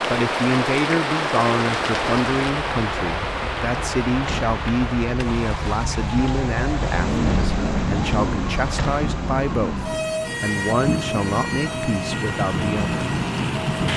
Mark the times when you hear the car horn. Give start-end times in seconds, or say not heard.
not heard.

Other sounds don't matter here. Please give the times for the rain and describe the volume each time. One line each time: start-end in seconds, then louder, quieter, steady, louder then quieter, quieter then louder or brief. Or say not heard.
0.0-13.9 quieter then louder.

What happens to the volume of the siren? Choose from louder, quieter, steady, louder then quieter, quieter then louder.
louder then quieter.